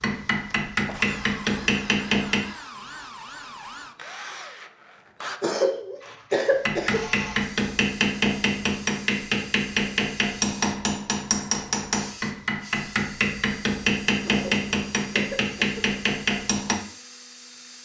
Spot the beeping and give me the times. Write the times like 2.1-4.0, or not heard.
not heard.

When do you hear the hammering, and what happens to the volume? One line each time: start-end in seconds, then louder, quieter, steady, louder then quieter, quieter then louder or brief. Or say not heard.
0.0-2.4 brief
6.5-16.8 steady.